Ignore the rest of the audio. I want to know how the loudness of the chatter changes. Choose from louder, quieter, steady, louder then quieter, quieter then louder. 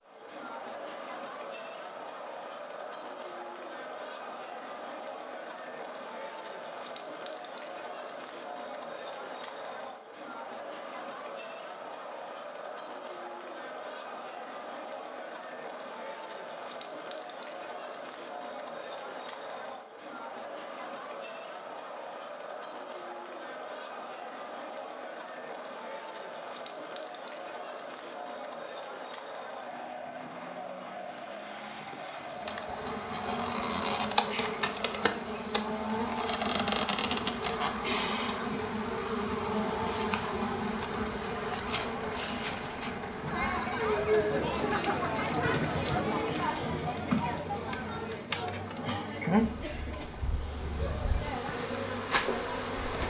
louder.